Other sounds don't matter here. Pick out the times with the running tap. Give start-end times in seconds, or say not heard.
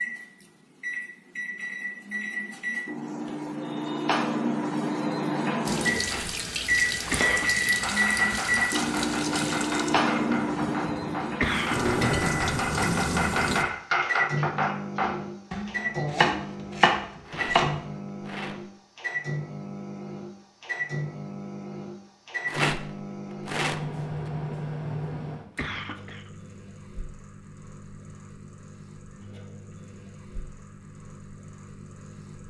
5.7-13.7.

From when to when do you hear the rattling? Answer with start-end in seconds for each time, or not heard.
6.0-7.2, 17.2-18.6, 22.4-24.3.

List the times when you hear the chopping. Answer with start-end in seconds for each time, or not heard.
7.0-17.9.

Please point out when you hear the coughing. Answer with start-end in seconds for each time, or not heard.
7.1-7.8, 11.2-11.9, 25.4-26.3.